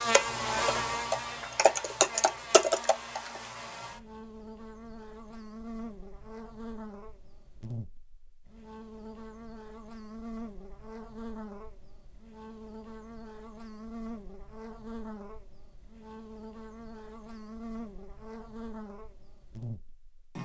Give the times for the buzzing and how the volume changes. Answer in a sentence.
You can hear the buzzing from 0.0 to 20.4 s, getting quieter.